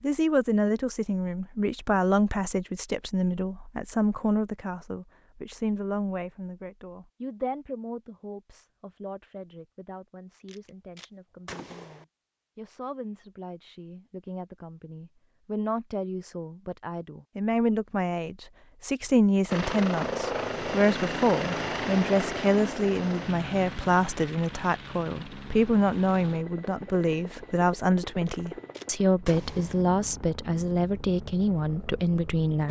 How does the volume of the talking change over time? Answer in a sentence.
The volume of the talking goes down, then up.